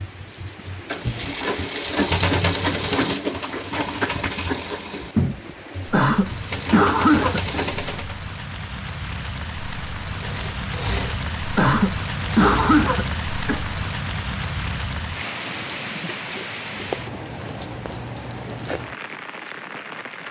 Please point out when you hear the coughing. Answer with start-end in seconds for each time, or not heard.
5.9-7.5, 11.6-13.6.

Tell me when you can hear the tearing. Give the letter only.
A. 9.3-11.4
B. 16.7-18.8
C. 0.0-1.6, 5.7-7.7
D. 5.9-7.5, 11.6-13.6
B.